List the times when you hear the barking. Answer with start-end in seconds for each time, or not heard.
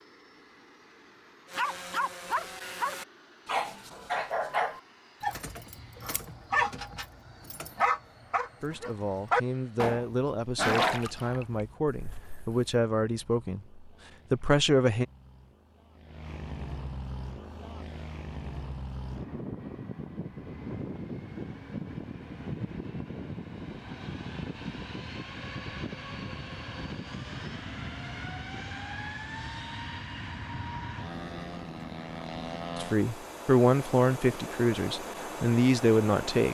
1.5-12.6.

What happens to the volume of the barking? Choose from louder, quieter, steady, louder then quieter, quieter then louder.
steady.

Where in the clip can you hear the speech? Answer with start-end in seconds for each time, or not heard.
8.6-15.1, 32.8-36.4.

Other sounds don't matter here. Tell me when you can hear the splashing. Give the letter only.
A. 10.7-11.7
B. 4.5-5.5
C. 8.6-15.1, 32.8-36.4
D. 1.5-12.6
A.